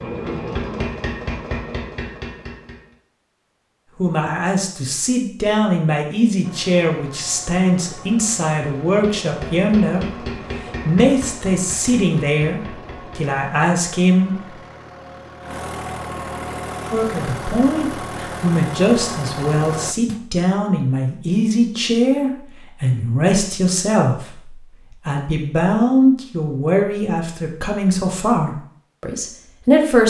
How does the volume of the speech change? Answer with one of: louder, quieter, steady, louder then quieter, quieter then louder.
steady.